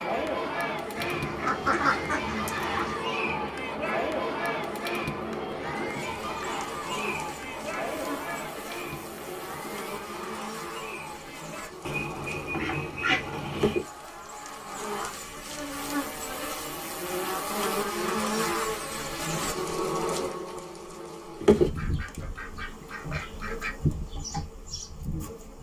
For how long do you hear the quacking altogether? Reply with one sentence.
The quacking can be heard for 6 seconds in total.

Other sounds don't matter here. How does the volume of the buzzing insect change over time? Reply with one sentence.
The loudness of the buzzing insect goes up.